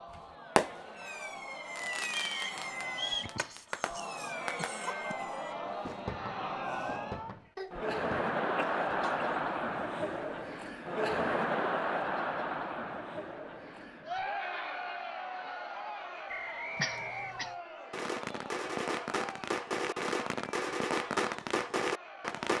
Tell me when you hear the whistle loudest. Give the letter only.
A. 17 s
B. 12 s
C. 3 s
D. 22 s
C.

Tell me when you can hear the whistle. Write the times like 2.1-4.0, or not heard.
2.1-3.4, 16.2-17.4.